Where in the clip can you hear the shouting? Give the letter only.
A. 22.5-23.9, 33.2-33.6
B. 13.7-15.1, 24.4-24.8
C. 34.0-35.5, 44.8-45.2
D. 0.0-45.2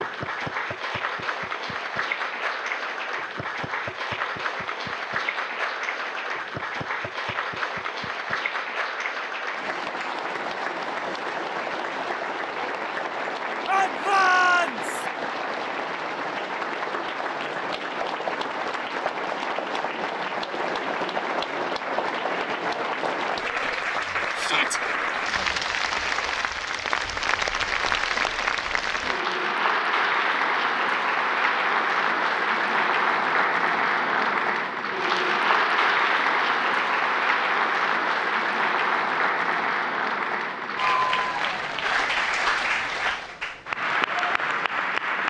B.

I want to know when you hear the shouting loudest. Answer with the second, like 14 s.
14 s.